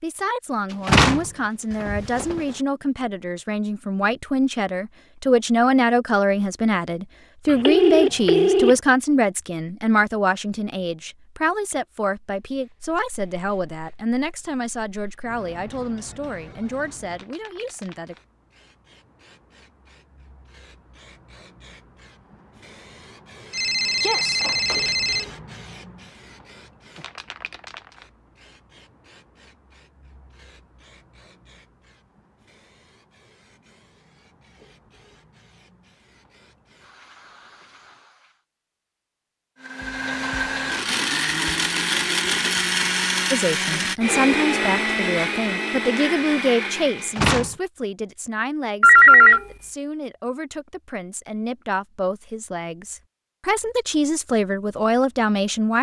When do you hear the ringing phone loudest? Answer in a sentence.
The loudest moment of the ringing phone is at 49 seconds.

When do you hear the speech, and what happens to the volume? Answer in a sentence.
The speech can be heard from 0.0 to 18.1 s, getting louder then quieter; and from 43.3 to 55.7 s, getting quieter then louder.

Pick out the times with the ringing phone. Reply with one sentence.
You can hear the ringing phone from 7.5 to 8.8 s, from 23.5 to 25.2 s and from 48.8 to 49.4 s.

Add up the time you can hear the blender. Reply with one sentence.
The blender can be heard for 8 seconds in total.